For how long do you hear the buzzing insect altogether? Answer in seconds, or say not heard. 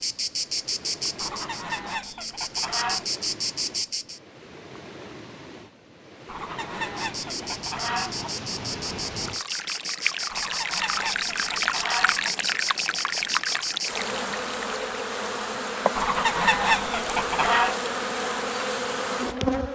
17 s.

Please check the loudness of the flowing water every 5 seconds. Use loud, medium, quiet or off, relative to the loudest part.
quiet, medium, loud, off.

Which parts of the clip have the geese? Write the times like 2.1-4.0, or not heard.
1.1-3.0, 6.2-8.3, 10.3-12.3, 15.9-17.8.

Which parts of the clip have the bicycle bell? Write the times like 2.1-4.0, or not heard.
not heard.